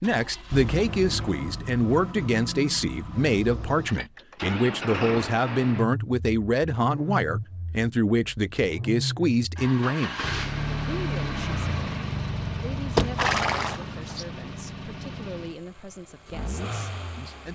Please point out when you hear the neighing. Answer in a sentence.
The neighing can be heard from 12.9 to 14.2 s.